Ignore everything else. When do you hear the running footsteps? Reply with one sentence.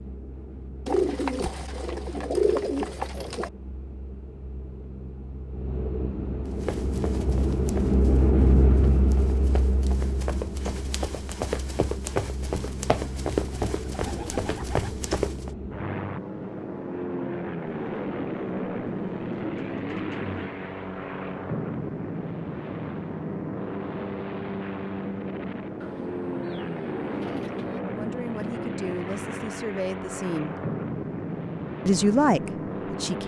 You can hear the running footsteps from 6.6 to 15.5 s.